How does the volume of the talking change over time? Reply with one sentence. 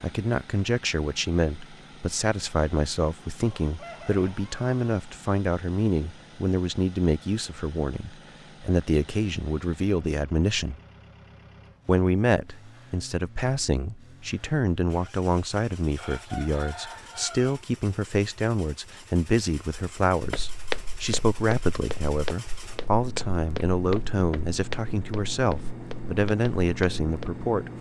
The loudness of the talking stays about the same.